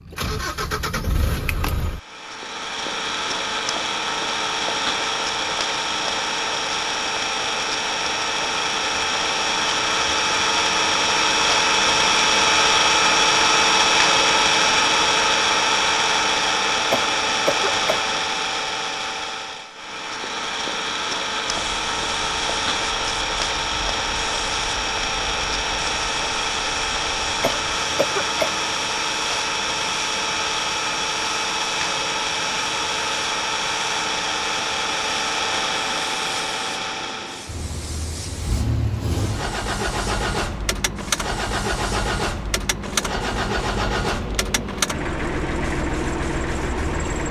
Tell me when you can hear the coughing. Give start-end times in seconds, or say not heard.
16.9-18.1, 27.4-28.6.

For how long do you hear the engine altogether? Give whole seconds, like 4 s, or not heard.
47 s.